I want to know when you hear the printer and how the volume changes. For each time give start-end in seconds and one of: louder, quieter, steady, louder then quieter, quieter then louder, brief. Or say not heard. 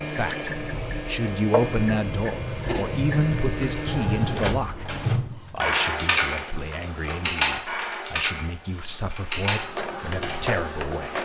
0.0-7.4 quieter
9.4-11.1 brief.